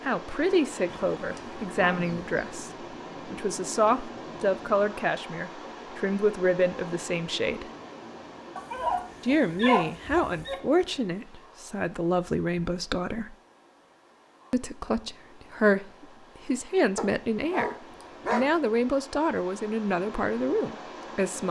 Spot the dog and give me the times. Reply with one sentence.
You can hear the dog from 0.8 to 2.3 s, from 8.6 to 10.6 s and from 16.9 to 18.5 s.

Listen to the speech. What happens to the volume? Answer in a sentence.
The volume of the speech stays about the same.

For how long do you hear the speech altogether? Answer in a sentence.
The speech can be heard for 19 seconds in total.